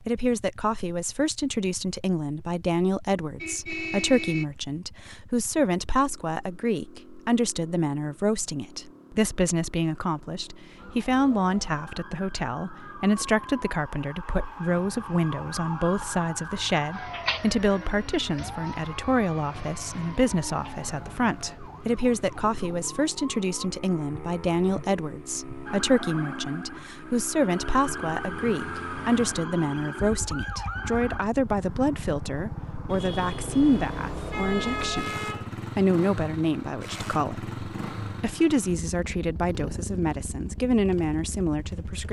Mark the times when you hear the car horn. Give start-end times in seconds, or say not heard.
3.4-4.5, 32.9-35.5.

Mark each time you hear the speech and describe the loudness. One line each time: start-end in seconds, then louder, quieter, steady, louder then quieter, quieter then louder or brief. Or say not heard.
0.0-42.0 steady.